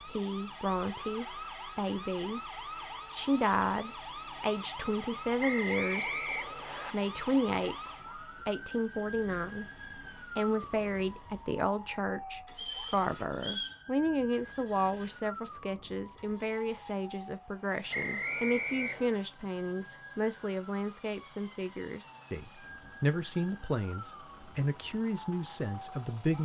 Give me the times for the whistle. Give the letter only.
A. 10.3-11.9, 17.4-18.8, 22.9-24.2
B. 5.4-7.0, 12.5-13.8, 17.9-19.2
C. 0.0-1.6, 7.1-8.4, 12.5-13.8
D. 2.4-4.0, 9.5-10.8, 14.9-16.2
B.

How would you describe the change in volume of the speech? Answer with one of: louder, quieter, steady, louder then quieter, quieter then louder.
steady.